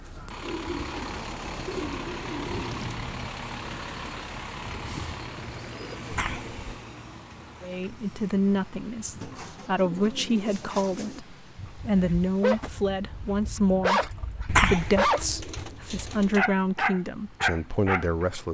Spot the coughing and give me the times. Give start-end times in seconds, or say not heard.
6.1-6.6, 14.4-15.1.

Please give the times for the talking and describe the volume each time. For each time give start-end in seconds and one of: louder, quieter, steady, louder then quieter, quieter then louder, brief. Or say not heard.
7.6-18.4 steady.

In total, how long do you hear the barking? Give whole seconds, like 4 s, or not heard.
7 s.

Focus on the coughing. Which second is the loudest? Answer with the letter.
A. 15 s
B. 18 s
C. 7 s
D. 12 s
A.